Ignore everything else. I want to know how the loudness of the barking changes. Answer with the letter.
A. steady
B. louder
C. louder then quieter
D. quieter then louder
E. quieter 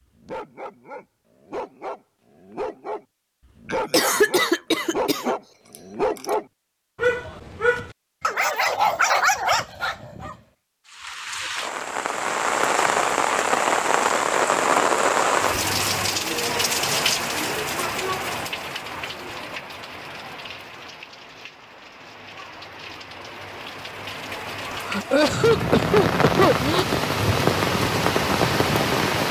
B.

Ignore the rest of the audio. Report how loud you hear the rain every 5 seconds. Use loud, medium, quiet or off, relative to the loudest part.
off, off, loud, loud, quiet, loud.